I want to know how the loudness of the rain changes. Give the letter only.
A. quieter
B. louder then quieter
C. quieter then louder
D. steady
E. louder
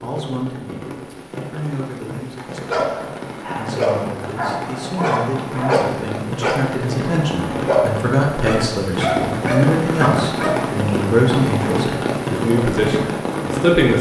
E.